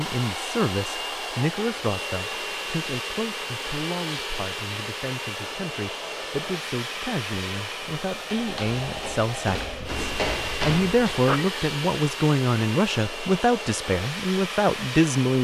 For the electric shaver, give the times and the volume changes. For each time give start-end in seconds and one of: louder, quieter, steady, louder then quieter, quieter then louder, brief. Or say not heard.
not heard.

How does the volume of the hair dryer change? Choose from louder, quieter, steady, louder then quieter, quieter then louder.
steady.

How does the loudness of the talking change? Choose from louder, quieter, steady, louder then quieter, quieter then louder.
quieter then louder.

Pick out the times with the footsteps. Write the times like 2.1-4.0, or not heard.
8.3-11.6.